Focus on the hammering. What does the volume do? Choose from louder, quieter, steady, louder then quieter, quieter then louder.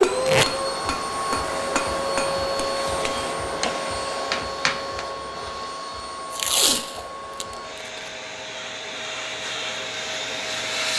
louder.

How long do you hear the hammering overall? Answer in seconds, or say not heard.
5 s.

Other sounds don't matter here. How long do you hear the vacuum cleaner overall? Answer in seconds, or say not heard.
11 s.